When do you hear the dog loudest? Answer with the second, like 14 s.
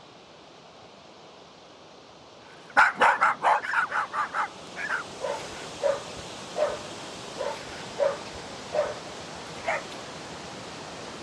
3 s.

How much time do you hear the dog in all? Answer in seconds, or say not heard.
7 s.